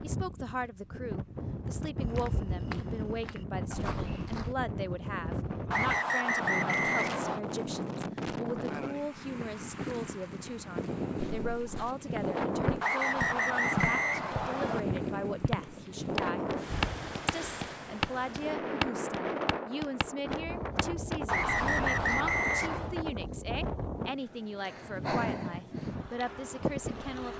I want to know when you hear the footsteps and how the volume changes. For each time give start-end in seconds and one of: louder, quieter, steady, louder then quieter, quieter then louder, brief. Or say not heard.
2.0-4.5 brief
11.2-22.2 louder then quieter.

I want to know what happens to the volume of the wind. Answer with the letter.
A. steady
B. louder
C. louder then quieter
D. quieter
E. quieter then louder
A.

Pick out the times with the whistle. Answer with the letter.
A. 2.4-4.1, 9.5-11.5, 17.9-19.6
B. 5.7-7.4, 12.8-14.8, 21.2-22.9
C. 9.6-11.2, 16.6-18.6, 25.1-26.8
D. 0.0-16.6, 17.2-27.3
B.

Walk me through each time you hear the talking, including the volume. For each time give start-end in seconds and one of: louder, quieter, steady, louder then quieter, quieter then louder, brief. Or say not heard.
0.0-16.6 steady
17.2-27.3 steady.